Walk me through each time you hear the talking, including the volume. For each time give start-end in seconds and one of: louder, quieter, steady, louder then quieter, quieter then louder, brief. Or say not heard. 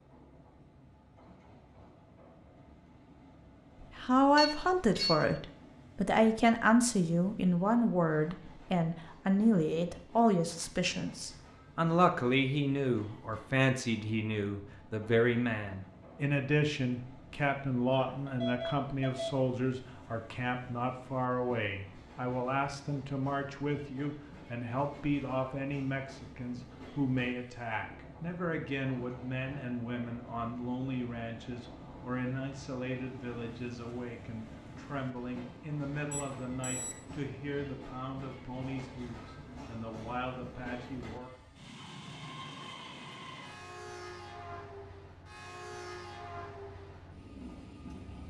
4.0-41.3 quieter.